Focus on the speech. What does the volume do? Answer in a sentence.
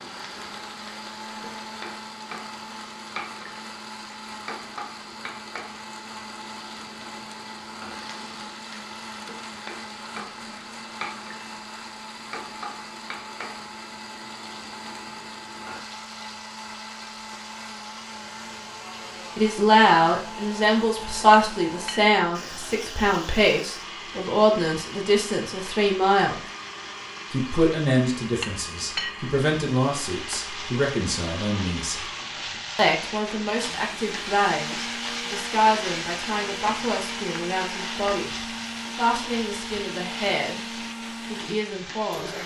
The volume of the speech goes down.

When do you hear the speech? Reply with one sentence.
The speech can be heard from 19.4 to 26.4 s, from 27.3 to 32.0 s and from 32.8 to 42.4 s.